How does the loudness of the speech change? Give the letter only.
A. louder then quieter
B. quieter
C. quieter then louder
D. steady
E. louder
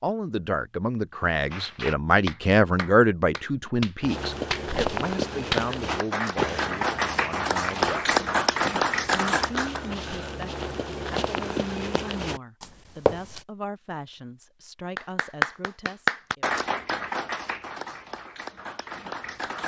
B.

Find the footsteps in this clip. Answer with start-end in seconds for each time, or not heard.
4.0-13.4.